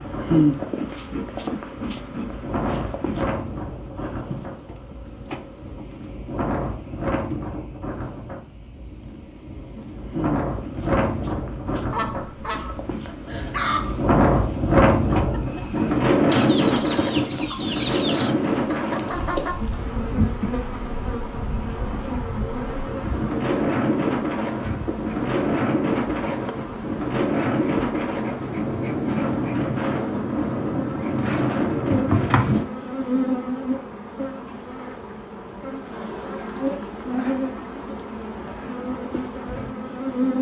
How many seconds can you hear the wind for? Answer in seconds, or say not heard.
33 s.